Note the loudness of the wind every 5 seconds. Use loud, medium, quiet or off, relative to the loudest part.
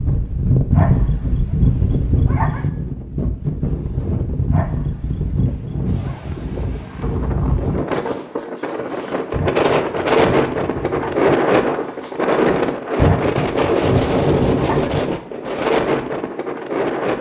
medium, medium, loud, loud.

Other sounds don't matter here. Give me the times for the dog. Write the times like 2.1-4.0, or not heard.
0.7-2.7, 4.5-6.2, 9.3-11.3, 12.9-15.0.